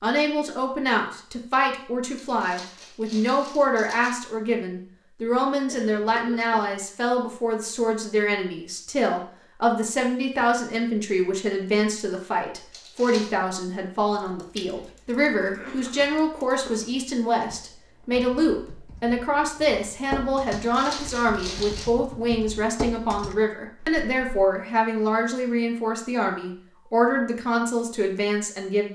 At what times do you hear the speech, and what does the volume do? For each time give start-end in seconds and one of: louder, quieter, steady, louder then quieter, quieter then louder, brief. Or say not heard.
0.0-28.9 steady.